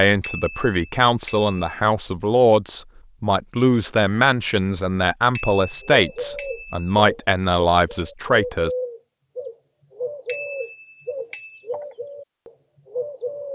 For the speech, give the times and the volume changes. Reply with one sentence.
The speech can be heard from 0.0 to 8.7 s, at a steady volume.